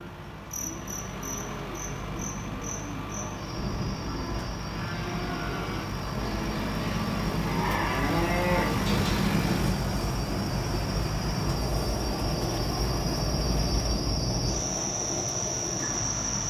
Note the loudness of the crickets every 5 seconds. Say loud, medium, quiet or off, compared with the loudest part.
medium, medium, loud, loud.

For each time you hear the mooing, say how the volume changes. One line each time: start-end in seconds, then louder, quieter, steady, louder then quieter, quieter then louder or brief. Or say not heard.
0.6-9.6 louder.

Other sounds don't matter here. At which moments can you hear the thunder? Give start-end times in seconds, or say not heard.
not heard.